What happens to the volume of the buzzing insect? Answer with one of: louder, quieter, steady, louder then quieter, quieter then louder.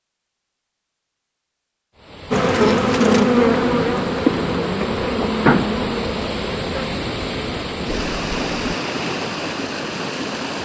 quieter.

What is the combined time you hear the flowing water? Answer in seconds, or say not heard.
9 s.